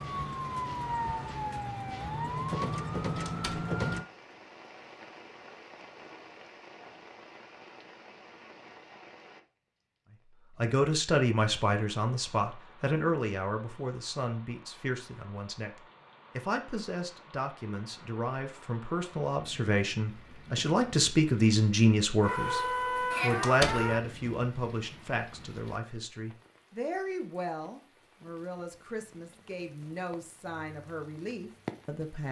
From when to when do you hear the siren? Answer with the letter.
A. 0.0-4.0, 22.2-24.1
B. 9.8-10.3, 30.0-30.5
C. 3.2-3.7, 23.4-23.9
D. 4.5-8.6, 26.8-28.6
A.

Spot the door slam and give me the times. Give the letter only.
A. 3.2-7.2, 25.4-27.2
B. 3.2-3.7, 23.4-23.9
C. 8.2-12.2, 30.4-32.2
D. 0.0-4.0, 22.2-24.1
B.